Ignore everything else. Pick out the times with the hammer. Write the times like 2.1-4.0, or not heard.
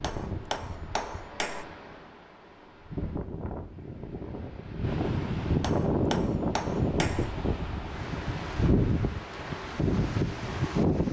0.0-1.6, 5.6-7.4.